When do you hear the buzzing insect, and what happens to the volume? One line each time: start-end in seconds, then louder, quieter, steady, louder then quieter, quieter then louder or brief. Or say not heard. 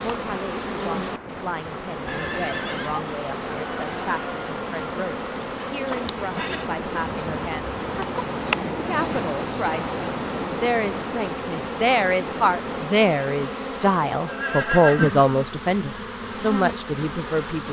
0.0-17.6 steady.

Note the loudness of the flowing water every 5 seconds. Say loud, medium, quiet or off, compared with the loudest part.
medium, loud, loud, off.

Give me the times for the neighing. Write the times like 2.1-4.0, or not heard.
2.0-3.0, 5.9-6.7, 14.2-15.2.